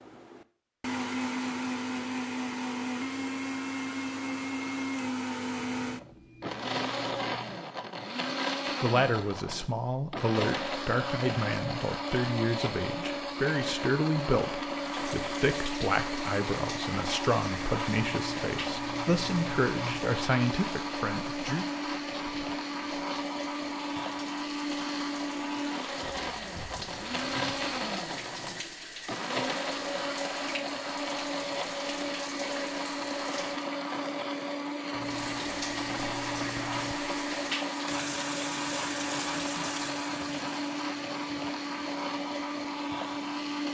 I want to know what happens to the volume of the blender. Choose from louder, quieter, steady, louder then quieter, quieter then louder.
steady.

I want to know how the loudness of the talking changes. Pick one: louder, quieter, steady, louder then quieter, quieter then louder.
steady.